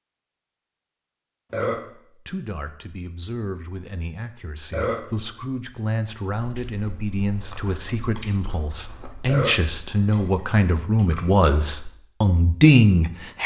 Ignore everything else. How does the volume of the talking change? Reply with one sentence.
The volume of the talking goes up.